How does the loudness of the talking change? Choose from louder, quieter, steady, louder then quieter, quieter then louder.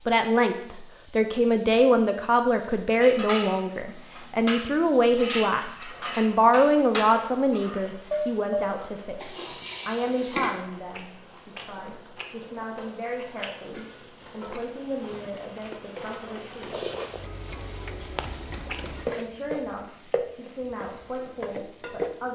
quieter.